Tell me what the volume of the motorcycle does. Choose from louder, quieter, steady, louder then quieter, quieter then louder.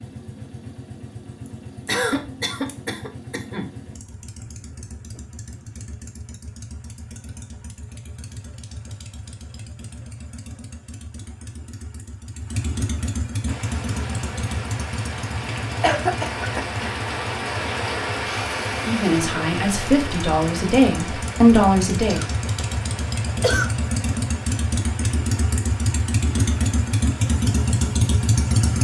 louder.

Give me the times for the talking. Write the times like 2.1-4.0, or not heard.
18.8-22.2.